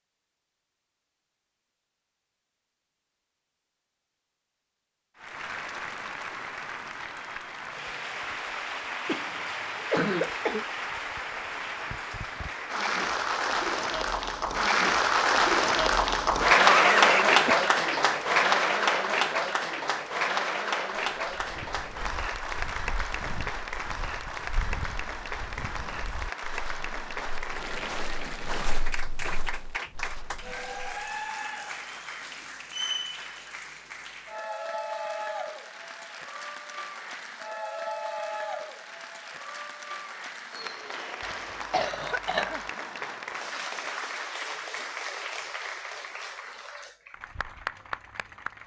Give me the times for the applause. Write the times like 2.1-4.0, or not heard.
5.2-48.6.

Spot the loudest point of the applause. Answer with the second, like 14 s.
17 s.